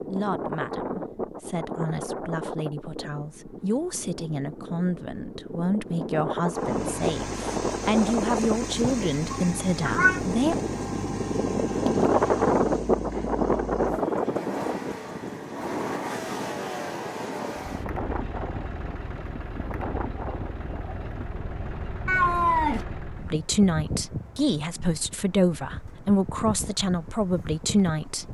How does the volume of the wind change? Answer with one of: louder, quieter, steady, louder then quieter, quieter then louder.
louder then quieter.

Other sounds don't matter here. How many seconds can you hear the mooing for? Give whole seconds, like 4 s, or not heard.
not heard.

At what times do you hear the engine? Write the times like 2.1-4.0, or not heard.
6.5-23.4.